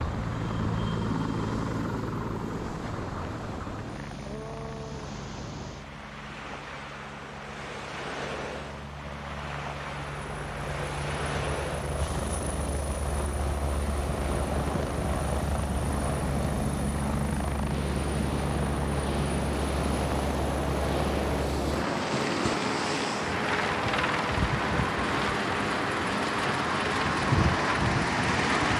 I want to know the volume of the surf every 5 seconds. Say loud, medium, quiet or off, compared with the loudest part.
quiet, medium, medium, medium, loud, loud.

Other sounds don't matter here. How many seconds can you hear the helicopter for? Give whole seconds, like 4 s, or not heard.
29 s.